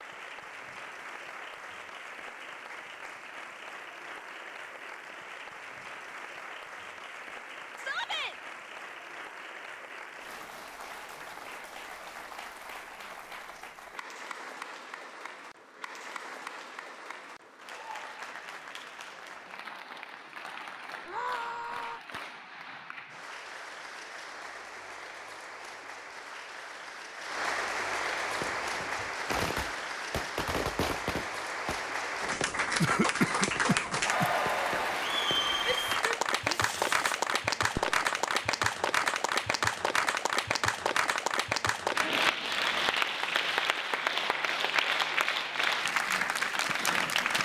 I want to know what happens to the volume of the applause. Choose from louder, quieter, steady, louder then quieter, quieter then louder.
louder.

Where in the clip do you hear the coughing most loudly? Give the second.
33 s.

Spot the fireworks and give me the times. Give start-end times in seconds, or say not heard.
28.4-38.0.